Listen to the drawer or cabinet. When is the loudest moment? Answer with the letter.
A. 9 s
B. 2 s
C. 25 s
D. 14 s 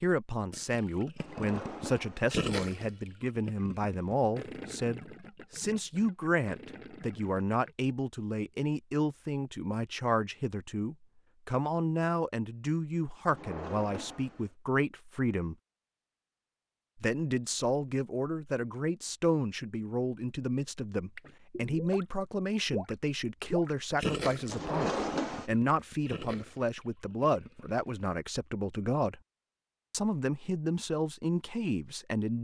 C.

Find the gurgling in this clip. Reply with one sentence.
You can hear the gurgling from 0.5 to 7.8 s, from 21.1 to 22.1 s and from 22.7 to 27.9 s.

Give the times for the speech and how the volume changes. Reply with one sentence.
You can hear the speech from 0.0 to 15.6 s, at a steady volume; from 17.0 to 29.2 s, at a steady volume; and briefly from 29.9 to 32.3 s.